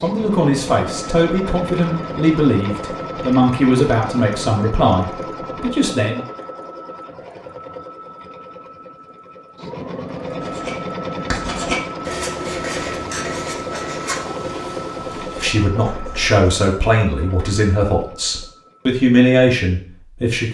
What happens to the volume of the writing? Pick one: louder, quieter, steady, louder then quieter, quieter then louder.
quieter.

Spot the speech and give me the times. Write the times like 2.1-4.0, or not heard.
0.0-6.2, 15.3-20.4.